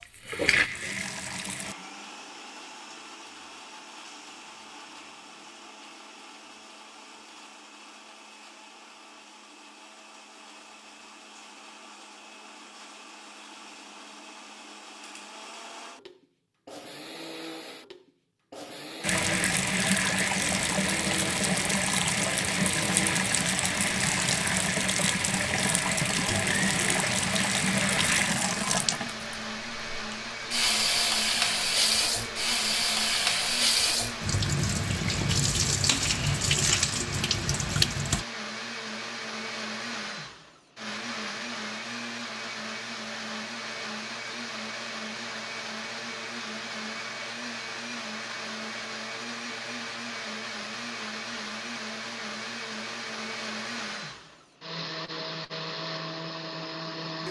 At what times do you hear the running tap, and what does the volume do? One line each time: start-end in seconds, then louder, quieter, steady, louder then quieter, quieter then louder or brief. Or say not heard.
0.0-1.8 brief
19.0-38.2 steady.